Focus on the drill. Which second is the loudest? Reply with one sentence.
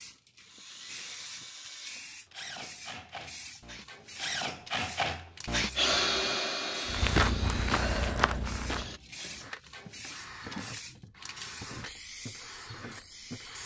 The loudest moment of the drill is at 6 seconds.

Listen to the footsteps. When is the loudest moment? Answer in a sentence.
The volume of the footsteps peaks at 7 seconds.